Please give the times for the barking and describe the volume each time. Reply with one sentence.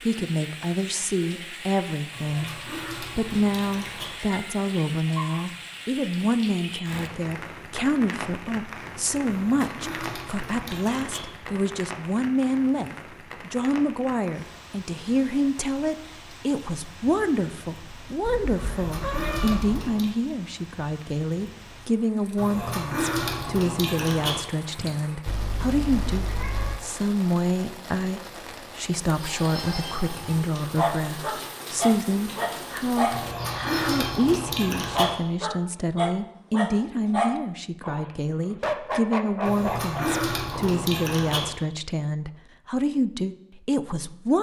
You can hear the barking from 29.2 to 40.8 s, at a steady volume.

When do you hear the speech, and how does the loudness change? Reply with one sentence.
You can hear the speech from 0.0 to 44.3 s, at a steady volume.